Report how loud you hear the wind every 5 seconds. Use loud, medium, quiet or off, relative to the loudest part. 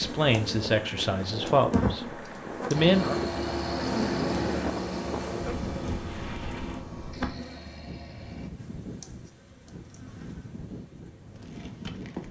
loud, medium, medium.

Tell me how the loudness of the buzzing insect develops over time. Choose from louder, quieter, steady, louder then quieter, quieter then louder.
quieter.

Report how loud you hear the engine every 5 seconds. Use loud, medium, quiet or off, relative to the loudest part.
loud, medium, off.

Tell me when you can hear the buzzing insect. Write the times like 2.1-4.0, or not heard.
0.0-12.2.